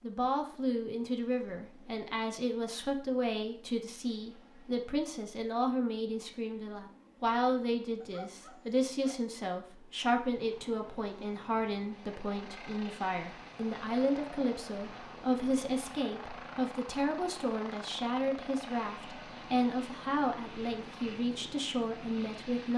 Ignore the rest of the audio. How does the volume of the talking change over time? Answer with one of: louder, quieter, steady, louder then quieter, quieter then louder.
steady.